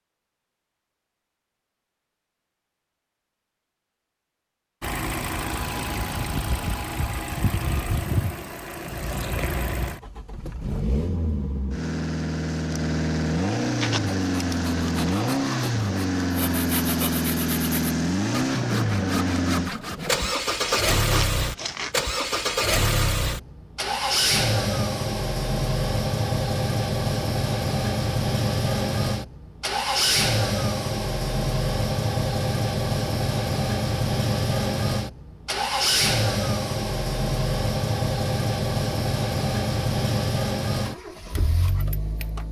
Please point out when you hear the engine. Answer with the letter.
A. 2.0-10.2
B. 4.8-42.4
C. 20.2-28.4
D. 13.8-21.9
B.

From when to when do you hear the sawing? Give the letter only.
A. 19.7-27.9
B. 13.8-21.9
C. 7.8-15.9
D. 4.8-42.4
B.